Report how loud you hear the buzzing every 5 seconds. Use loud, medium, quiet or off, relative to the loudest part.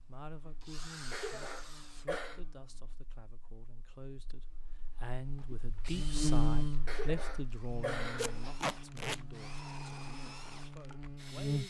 quiet, loud, loud.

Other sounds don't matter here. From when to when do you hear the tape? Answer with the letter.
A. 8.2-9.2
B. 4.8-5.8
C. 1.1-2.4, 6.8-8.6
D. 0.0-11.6
A.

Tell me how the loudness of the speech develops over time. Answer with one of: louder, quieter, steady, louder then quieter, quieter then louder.
louder then quieter.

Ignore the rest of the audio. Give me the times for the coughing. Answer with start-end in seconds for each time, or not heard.
1.1-2.4, 6.8-8.6.